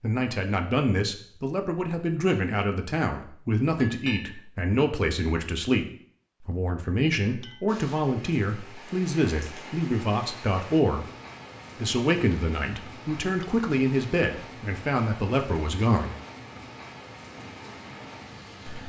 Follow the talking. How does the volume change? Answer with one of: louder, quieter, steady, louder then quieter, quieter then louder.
steady.